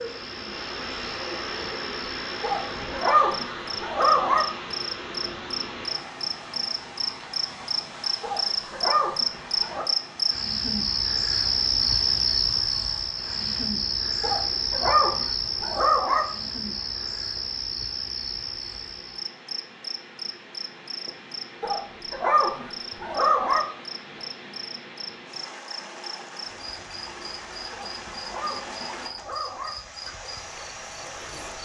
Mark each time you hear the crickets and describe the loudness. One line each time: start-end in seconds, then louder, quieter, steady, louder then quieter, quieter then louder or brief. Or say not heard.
0.0-31.6 louder then quieter.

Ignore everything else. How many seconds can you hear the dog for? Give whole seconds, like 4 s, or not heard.
10 s.